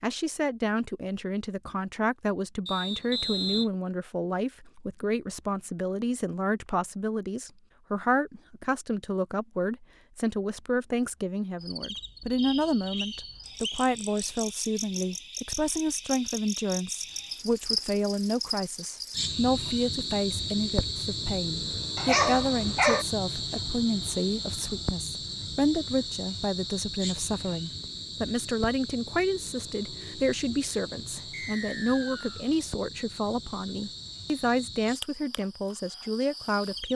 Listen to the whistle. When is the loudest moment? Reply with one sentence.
The volume of the whistle peaks at 3 seconds.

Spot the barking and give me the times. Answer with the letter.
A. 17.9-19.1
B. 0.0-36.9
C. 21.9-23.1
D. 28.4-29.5
C.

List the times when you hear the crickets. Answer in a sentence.
You can hear the crickets from 11.6 to 36.9 s.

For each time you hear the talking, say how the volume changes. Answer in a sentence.
The talking can be heard from 0.0 to 36.9 s, at a steady volume.